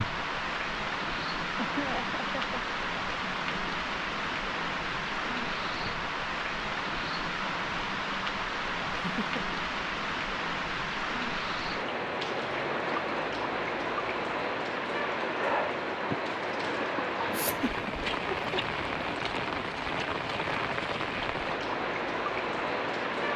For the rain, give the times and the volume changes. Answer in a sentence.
You can hear the rain from 0.0 to 23.3 s, at a steady volume.